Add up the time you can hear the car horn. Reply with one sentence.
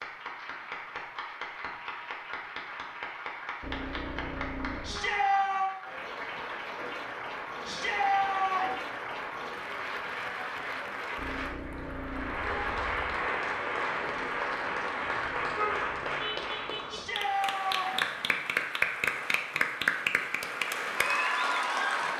You can hear the car horn for 5 seconds altogether.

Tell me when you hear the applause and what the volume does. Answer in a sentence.
The applause can be heard from 0.0 to 22.1 s, getting louder.